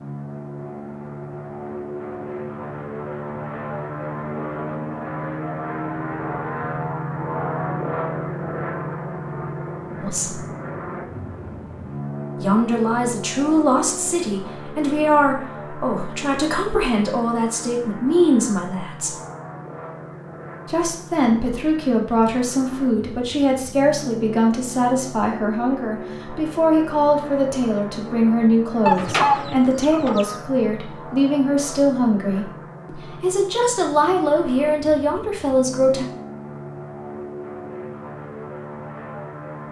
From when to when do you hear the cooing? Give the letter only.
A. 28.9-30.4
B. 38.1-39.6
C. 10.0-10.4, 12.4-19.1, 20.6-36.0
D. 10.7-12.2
A.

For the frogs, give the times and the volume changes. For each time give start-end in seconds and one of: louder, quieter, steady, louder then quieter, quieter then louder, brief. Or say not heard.
not heard.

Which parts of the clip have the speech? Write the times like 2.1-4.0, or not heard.
10.0-10.4, 12.4-19.1, 20.6-36.0.